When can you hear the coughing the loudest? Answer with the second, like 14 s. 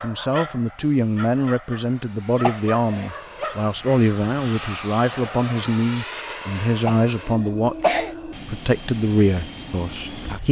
8 s.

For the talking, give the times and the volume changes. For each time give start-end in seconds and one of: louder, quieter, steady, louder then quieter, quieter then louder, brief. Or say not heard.
0.0-10.4 steady.